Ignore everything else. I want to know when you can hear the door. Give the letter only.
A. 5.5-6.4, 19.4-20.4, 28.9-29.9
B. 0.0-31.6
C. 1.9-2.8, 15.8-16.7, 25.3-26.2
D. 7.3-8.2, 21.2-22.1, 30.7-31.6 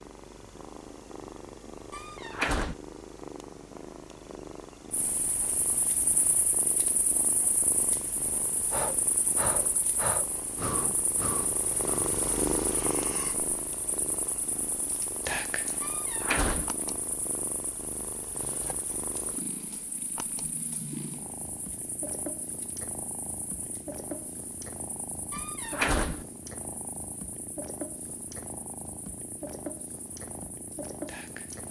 C.